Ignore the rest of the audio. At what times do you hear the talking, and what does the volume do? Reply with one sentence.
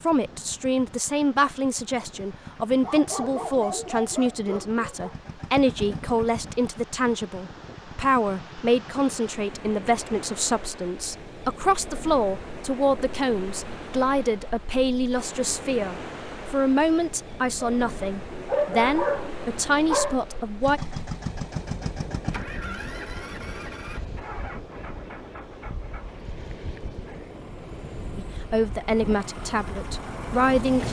The talking can be heard from 0.0 to 20.8 s, at a steady volume; and briefly from 28.1 to 30.8 s.